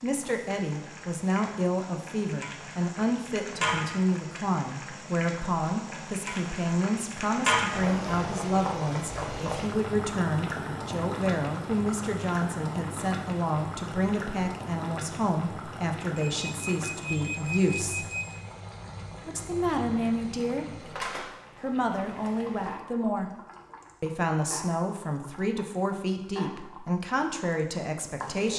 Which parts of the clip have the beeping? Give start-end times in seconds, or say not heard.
16.1-18.4.